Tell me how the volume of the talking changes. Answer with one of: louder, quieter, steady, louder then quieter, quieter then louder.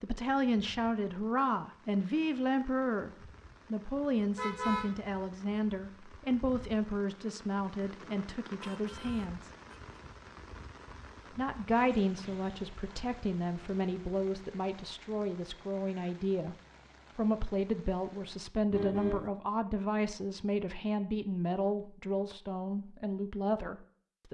steady.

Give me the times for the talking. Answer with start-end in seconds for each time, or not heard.
0.0-9.5, 11.3-16.6, 17.1-24.2.